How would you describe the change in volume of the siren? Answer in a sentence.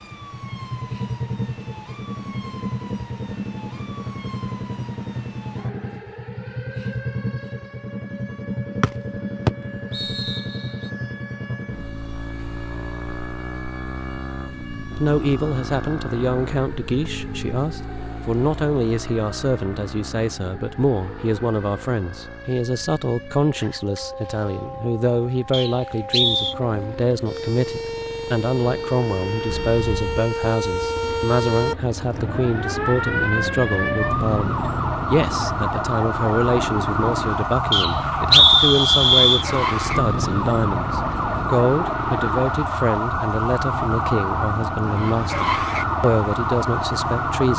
The volume of the siren goes up.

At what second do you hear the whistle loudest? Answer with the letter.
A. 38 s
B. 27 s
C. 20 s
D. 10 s
A.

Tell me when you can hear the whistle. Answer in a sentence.
The whistle can be heard from 8.8 to 10.4 s, from 25.5 to 26.6 s and from 37.7 to 39.5 s.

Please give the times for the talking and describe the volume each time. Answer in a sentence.
You can hear the talking from 14.9 to 47.5 s, at a steady volume.